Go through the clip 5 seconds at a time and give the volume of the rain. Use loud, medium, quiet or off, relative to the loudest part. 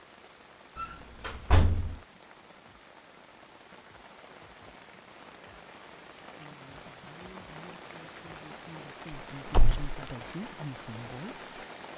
medium, loud, loud.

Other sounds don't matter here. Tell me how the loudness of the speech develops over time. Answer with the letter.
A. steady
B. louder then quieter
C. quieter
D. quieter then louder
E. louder
E.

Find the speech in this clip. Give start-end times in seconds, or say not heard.
6.3-11.7.